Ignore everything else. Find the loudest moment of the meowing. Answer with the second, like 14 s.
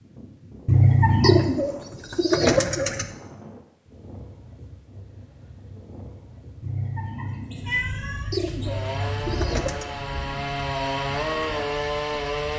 1 s.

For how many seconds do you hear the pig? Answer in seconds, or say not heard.
not heard.